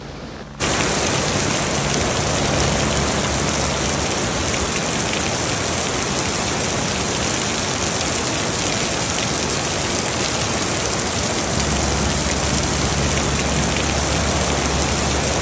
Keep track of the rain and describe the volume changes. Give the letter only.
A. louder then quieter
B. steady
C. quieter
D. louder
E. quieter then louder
B.